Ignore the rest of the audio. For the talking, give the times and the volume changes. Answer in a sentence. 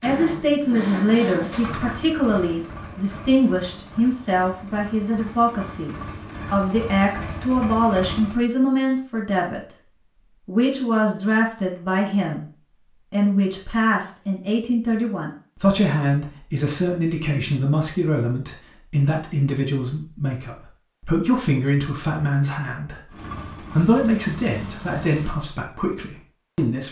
The talking can be heard from 0.0 to 9.8 s, at a steady volume; briefly from 10.4 to 12.4 s; and from 13.1 to 26.8 s, at a steady volume.